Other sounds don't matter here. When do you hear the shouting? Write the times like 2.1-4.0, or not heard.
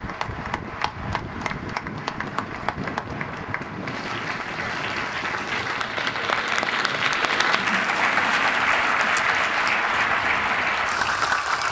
not heard.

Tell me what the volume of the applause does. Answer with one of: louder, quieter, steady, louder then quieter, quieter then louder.
louder.